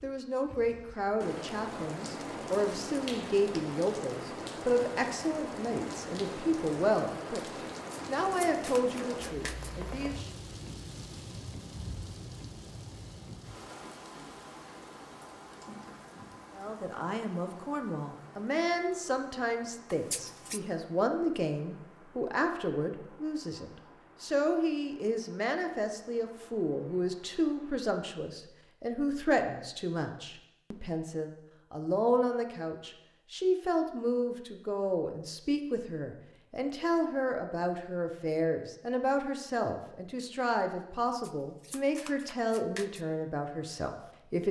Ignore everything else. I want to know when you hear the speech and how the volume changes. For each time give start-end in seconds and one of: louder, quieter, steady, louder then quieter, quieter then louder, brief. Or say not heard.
0.0-7.5 steady
8.1-10.3 brief
16.6-44.4 steady.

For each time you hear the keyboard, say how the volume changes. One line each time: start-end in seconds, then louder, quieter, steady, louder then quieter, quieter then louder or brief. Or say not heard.
not heard.